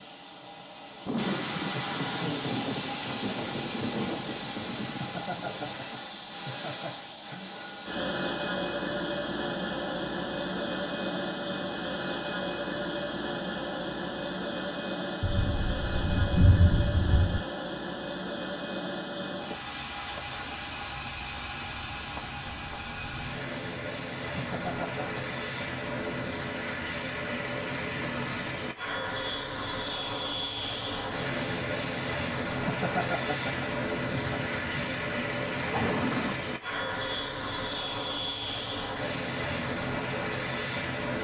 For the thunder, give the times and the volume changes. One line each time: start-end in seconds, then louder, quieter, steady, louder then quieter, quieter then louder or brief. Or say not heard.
1.1-6.0 quieter
15.2-17.4 brief
34.3-36.4 brief.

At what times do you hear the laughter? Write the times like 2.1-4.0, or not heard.
5.0-7.5, 24.4-25.4, 32.6-34.4.